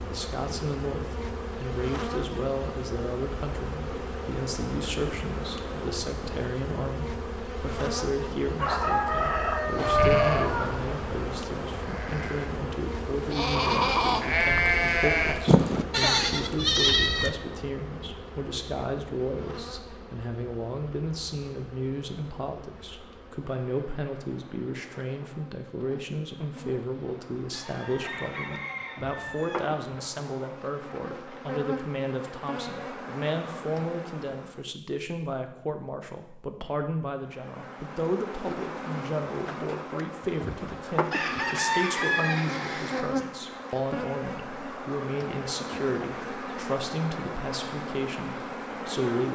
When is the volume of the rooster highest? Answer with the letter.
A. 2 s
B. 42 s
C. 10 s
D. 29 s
C.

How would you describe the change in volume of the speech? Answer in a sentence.
The volume of the speech stays about the same.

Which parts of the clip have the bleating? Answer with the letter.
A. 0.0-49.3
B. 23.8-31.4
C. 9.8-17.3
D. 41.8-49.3
C.